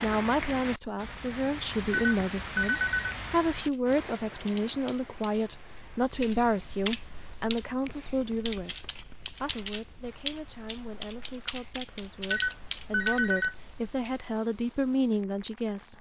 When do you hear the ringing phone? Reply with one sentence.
You can hear the ringing phone from 1.9 to 3.1 s and from 12.3 to 13.6 s.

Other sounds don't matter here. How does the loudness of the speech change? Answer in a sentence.
The loudness of the speech goes down, then up.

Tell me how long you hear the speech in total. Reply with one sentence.
You can hear the speech for 16 seconds altogether.